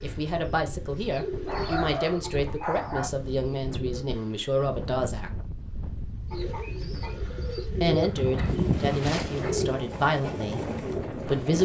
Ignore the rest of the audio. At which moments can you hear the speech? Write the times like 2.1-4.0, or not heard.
0.0-5.3, 7.8-11.6.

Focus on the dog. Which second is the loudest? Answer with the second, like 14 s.
9 s.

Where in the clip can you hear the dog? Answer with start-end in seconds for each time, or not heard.
1.4-3.1, 7.9-9.7.